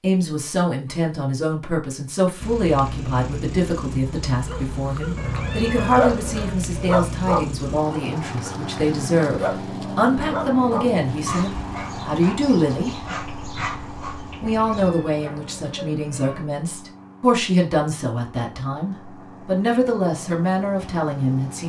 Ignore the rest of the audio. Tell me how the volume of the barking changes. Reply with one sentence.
The volume of the barking goes down.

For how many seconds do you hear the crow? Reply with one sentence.
The crow can't be heard in this clip.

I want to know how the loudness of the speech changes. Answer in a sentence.
The loudness of the speech stays about the same.